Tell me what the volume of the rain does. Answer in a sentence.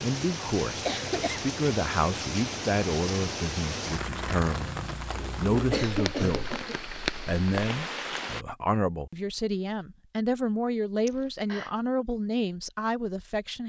The volume of the rain stays about the same.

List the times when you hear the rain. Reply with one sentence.
The rain can be heard from 0.0 to 8.4 s.